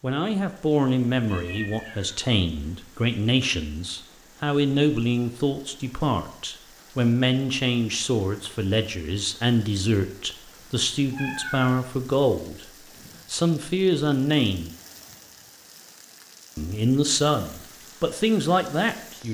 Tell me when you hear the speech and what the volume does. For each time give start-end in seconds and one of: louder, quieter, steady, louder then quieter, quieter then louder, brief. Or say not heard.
0.0-12.7 steady
13.3-14.7 brief
16.6-19.2 brief.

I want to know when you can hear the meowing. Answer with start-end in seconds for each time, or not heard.
1.2-2.2, 11.1-11.8.